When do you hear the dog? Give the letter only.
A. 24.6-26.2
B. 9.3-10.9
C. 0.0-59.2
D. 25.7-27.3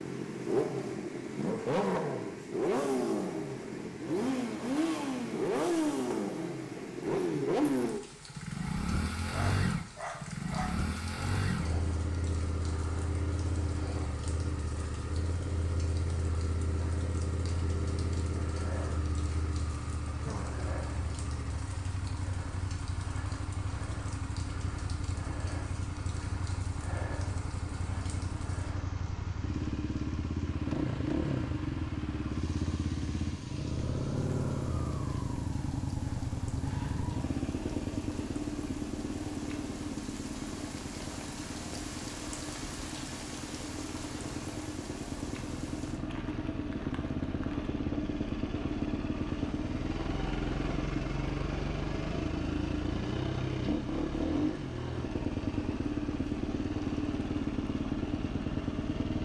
B.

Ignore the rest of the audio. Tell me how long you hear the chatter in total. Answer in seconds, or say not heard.
not heard.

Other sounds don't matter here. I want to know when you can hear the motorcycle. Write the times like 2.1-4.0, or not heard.
0.0-59.2.